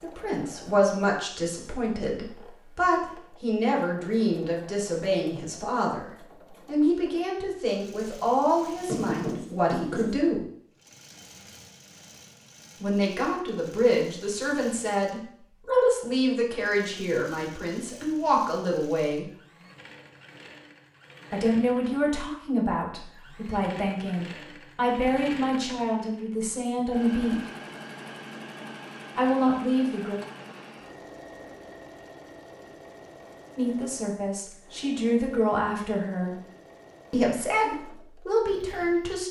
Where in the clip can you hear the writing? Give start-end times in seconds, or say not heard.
8.8-10.2.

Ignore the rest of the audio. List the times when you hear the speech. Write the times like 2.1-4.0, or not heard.
0.0-10.4, 12.8-19.3, 21.3-27.4, 29.1-30.1, 33.5-36.4, 37.1-39.2.